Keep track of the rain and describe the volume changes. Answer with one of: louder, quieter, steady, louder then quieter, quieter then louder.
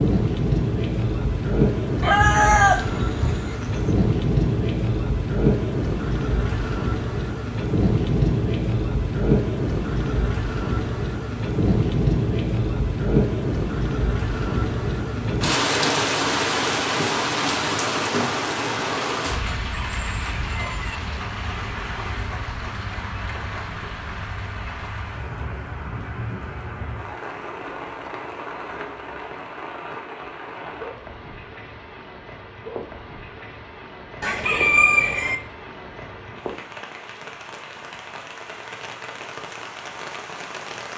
quieter.